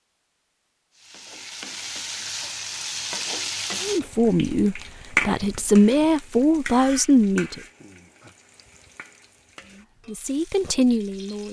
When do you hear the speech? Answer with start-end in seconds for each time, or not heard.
3.8-7.6, 9.7-11.4.